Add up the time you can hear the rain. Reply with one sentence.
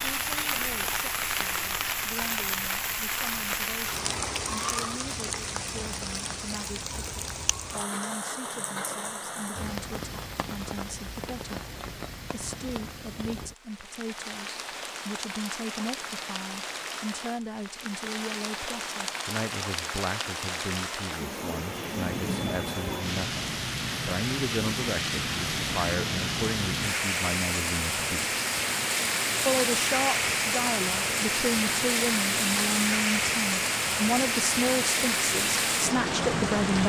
You can hear the rain for 37 seconds altogether.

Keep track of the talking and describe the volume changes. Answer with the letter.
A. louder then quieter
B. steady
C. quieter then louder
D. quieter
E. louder
E.